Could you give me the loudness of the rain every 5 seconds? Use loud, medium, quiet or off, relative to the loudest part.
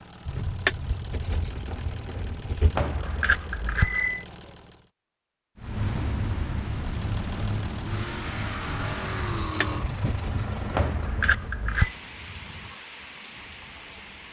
off, loud, medium.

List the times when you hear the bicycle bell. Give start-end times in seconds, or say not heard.
2.8-4.2, 10.8-11.9.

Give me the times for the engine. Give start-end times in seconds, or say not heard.
0.0-4.9, 6.7-11.2.